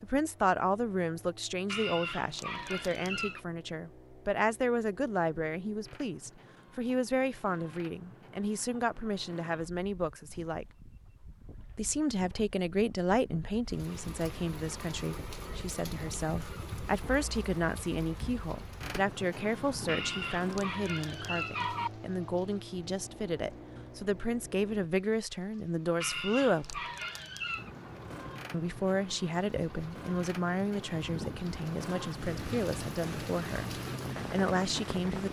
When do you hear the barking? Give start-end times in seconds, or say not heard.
1.6-3.4, 19.9-21.9, 26.0-27.7.